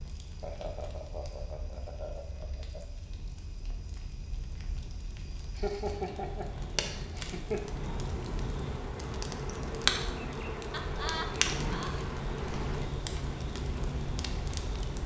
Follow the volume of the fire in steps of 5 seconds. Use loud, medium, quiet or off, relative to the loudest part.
quiet, loud, loud.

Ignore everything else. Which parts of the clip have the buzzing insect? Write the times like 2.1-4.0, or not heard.
7.5-15.0.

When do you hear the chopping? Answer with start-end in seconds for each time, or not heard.
not heard.